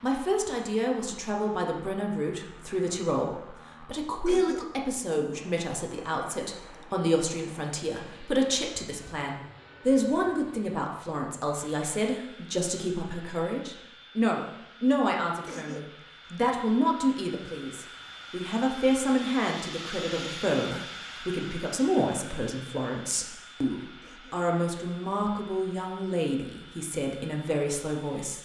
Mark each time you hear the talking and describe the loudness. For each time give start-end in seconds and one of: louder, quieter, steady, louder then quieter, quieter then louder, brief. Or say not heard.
0.0-28.4 steady.